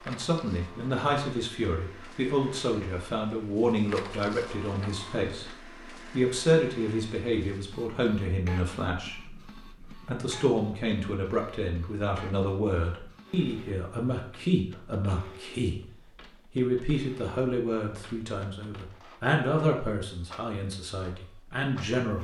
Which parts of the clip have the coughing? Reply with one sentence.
The coughing can't be heard in this clip.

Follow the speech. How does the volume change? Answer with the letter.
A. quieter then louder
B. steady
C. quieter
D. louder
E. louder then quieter
B.